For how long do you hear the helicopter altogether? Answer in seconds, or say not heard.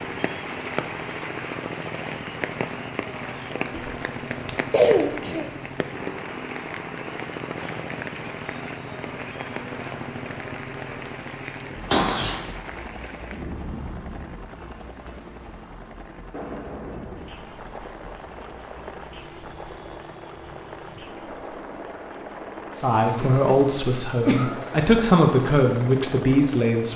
27 s.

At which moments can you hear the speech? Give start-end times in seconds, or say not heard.
22.8-26.9.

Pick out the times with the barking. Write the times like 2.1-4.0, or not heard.
not heard.